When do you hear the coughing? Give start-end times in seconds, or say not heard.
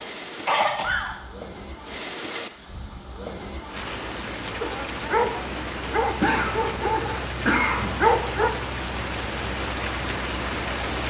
0.4-1.1, 6.0-8.1.